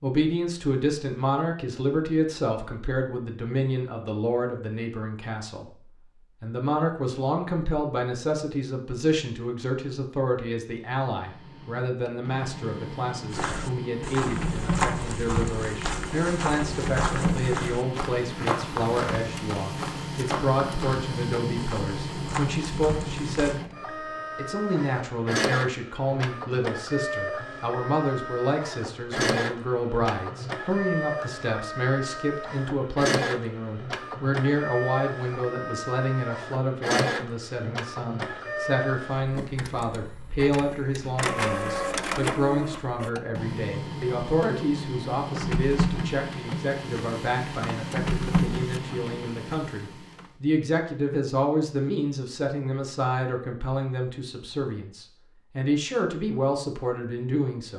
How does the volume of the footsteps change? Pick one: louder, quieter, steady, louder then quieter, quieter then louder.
quieter.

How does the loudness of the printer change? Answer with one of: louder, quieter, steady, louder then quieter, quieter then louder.
steady.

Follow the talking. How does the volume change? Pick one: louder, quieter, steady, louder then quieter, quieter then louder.
steady.